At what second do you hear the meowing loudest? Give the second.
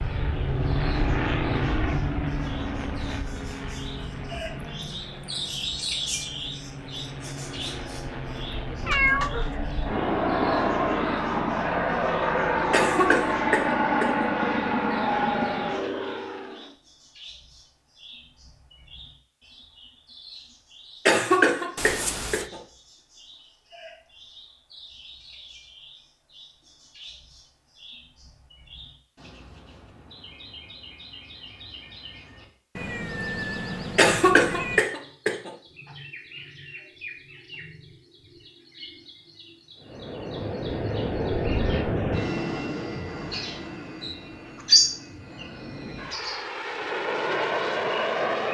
9 s.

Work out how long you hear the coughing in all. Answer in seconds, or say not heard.
5 s.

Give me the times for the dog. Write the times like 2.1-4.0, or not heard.
not heard.